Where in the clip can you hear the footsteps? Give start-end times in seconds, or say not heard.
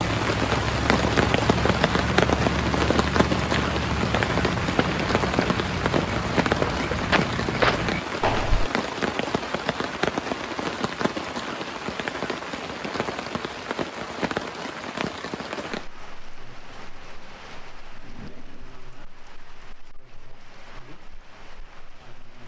0.0-8.7.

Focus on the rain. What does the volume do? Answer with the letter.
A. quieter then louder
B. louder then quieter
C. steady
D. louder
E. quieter
E.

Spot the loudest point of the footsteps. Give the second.
8 s.